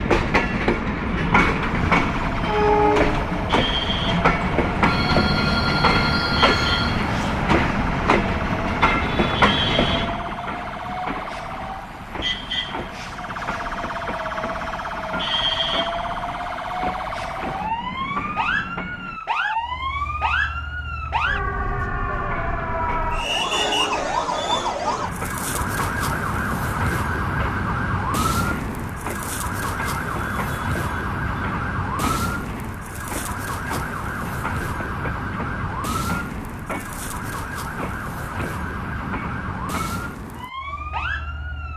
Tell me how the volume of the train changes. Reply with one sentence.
The volume of the train goes down.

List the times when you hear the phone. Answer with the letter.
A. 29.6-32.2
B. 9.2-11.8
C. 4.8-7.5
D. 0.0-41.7
C.